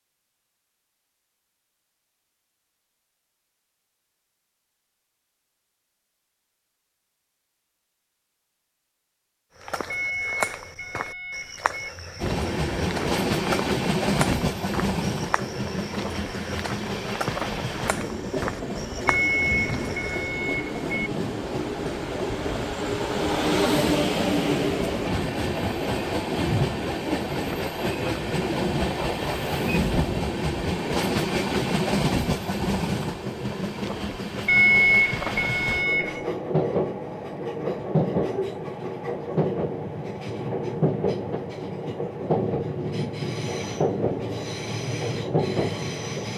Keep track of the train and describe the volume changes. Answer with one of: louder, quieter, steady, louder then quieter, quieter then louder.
steady.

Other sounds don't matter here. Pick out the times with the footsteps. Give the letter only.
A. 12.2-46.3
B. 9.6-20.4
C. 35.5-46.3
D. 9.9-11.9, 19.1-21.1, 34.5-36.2
B.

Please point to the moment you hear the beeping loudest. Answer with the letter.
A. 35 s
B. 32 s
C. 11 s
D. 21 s
A.